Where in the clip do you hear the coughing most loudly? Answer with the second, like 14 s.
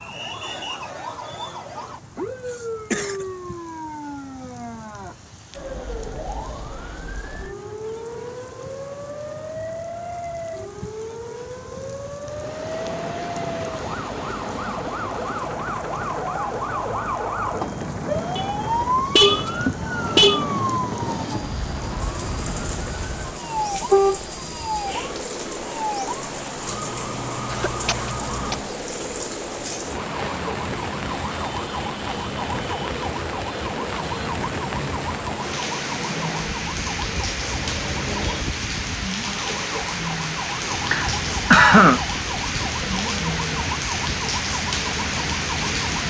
42 s.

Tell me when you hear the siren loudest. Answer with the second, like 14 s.
19 s.